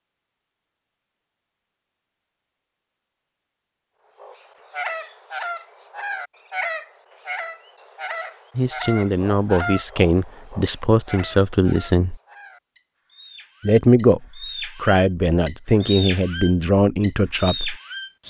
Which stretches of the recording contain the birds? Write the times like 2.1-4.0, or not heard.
4.2-18.2.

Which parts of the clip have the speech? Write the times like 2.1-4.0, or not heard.
8.6-12.2, 13.6-17.8.